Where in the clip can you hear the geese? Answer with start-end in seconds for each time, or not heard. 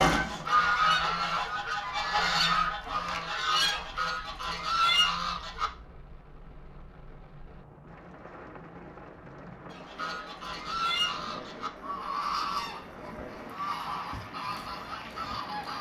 0.0-5.7, 9.7-15.7.